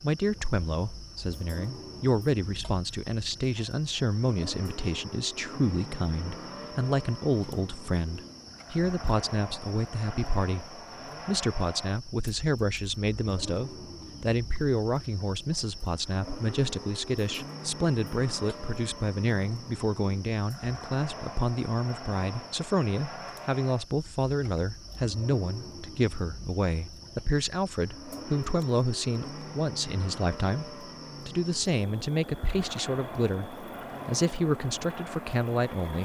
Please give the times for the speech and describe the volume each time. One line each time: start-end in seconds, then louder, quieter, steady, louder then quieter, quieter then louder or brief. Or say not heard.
0.0-36.0 steady.